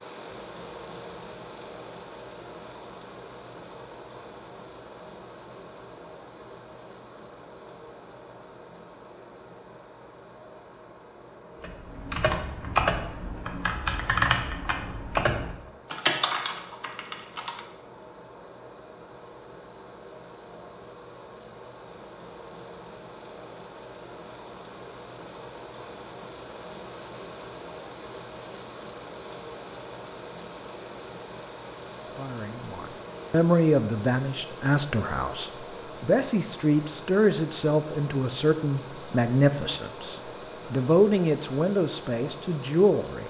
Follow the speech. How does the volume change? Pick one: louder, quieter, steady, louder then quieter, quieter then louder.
steady.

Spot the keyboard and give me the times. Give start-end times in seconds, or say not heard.
11.6-17.6.